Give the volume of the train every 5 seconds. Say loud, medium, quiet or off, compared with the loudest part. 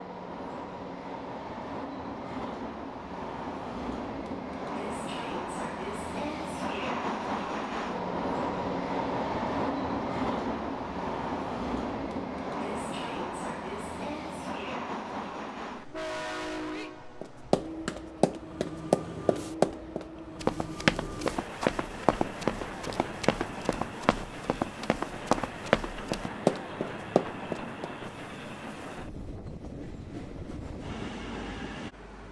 medium, loud, loud, medium, medium, medium, medium.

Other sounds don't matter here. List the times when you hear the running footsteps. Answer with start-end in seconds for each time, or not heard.
17.2-27.9.